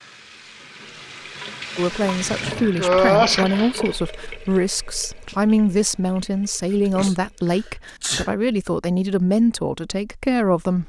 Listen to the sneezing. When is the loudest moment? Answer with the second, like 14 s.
3 s.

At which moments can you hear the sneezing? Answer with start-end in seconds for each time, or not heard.
2.8-3.5, 6.8-8.3.